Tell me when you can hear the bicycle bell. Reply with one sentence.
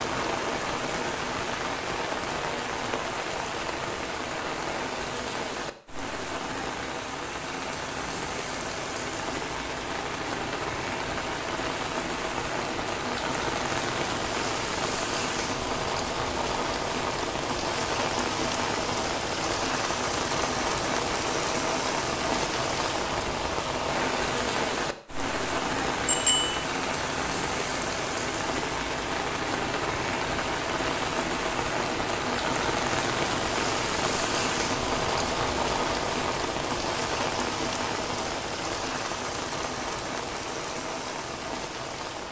The bicycle bell can be heard from 26.1 to 26.6 s.